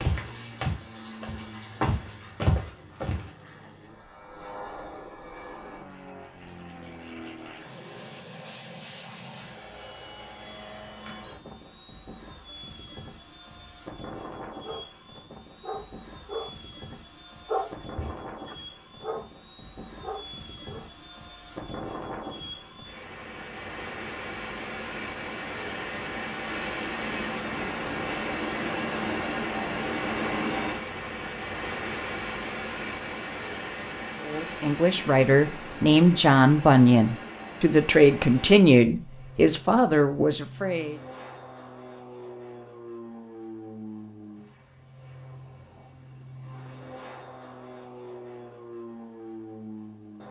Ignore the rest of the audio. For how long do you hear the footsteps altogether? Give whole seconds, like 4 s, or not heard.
3 s.